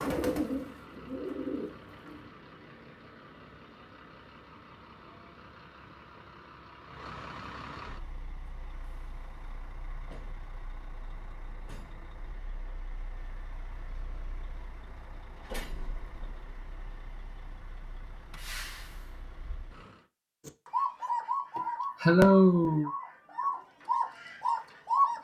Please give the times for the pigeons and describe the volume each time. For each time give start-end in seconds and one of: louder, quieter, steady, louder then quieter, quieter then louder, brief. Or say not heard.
0.0-2.3 brief
20.4-25.1 quieter then louder.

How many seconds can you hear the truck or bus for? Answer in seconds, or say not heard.
20 s.